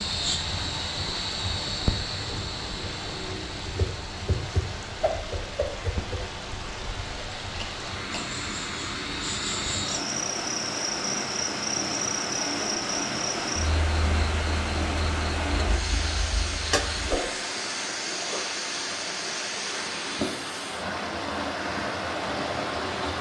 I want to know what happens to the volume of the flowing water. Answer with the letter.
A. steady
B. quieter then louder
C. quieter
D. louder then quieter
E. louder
E.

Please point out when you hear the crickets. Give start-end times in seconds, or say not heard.
0.0-17.1.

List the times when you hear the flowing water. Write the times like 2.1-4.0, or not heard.
0.0-23.1.